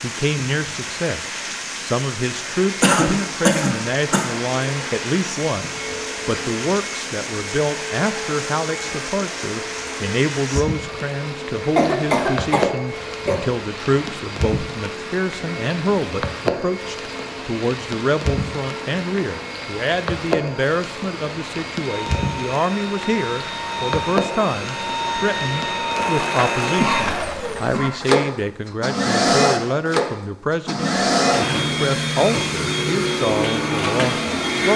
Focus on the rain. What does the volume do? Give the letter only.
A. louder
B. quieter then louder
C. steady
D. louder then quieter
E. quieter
C.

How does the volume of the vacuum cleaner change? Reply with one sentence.
The volume of the vacuum cleaner goes up.